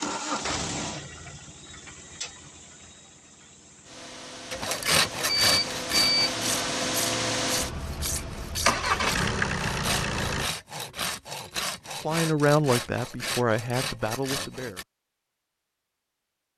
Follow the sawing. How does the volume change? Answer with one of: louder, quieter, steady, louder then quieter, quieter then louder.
quieter.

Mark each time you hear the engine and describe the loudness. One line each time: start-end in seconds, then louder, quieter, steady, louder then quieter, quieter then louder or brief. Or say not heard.
0.0-10.5 quieter then louder.